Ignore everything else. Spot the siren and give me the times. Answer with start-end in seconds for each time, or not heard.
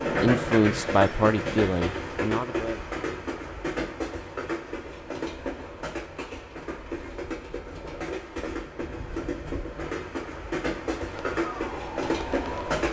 11.1-12.8.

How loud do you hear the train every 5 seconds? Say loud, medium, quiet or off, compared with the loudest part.
loud, medium, loud.